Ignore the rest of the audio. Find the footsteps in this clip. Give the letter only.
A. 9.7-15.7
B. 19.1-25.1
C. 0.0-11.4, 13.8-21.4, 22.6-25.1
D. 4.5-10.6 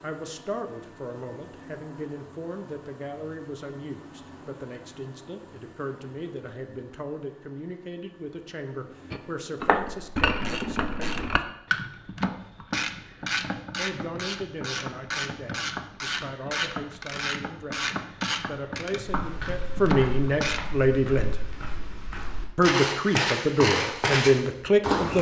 B.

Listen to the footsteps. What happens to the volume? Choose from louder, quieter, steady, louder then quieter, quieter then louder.
louder.